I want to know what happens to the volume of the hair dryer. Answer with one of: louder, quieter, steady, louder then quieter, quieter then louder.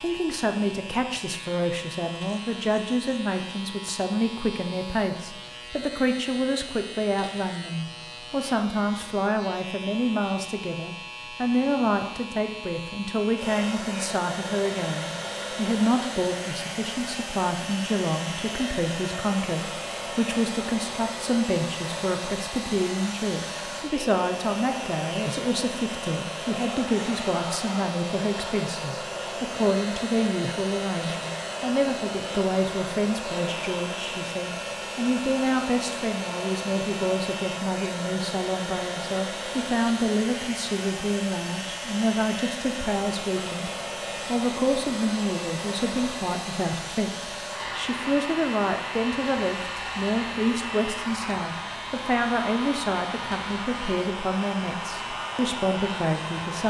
steady.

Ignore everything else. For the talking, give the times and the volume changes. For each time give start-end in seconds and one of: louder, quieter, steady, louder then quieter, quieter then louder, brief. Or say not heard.
0.0-56.6 steady.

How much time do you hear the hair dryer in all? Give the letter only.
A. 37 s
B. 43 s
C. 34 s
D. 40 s
B.